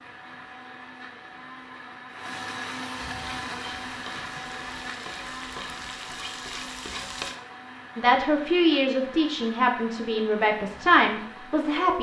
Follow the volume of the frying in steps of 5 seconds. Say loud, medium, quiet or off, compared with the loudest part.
medium, loud, off.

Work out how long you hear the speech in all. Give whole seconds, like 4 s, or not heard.
4 s.